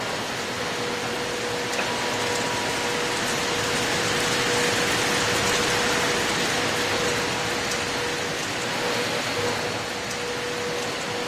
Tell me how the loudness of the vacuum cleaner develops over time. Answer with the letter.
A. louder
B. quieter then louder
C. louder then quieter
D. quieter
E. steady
E.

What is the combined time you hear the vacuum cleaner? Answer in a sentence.
You can hear the vacuum cleaner for 11 seconds altogether.